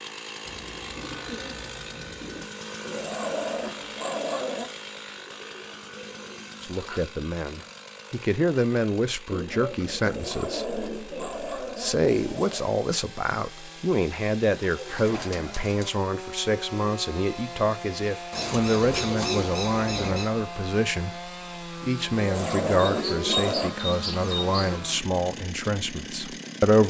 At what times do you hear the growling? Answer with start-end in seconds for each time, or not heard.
2.8-4.7, 10.0-12.7, 22.1-23.8.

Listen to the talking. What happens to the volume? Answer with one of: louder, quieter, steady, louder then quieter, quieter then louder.
steady.